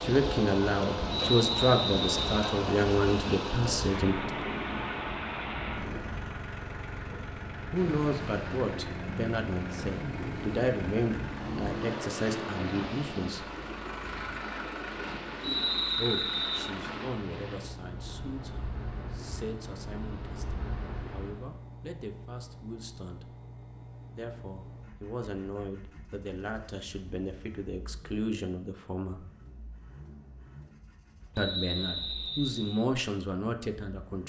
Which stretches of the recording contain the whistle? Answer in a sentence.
You can hear the whistle from 1.1 to 2.5 s, from 15.4 to 16.7 s and from 31.4 to 32.9 s.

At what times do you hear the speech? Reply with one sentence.
The speech can be heard from 0.0 to 4.3 s, from 7.7 to 13.4 s, from 15.9 to 23.3 s, from 24.1 to 29.2 s and from 31.4 to 34.2 s.